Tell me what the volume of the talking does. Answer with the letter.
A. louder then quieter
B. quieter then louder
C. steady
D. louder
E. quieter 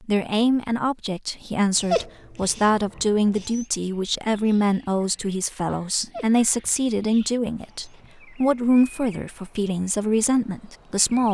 C.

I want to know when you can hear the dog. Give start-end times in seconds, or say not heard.
1.8-3.6, 6.0-8.1.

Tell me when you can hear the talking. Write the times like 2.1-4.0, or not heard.
0.1-11.2.